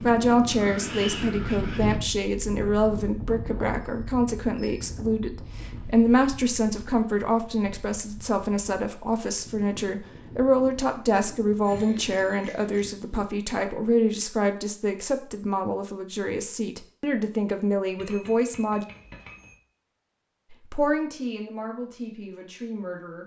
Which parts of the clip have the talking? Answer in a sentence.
The talking can be heard from 0.0 to 18.9 s and from 20.5 to 23.2 s.